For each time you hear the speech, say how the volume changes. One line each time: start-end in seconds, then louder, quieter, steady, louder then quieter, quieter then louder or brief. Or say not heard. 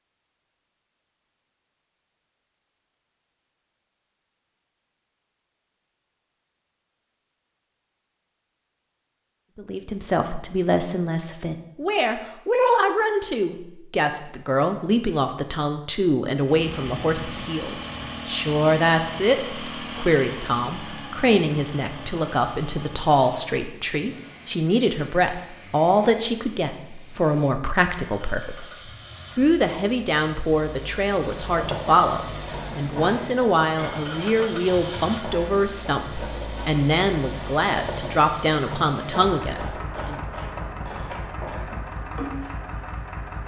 9.6-40.1 steady.